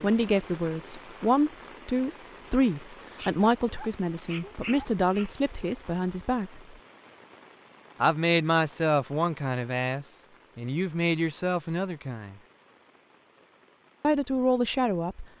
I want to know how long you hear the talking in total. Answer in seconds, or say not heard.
12 s.